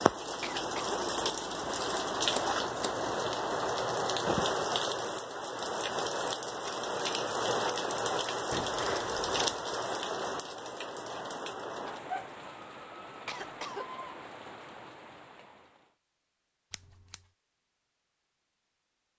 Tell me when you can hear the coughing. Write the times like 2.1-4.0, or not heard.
0.4-1.1, 13.2-13.9.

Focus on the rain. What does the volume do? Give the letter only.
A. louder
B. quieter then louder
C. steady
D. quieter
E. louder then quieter
D.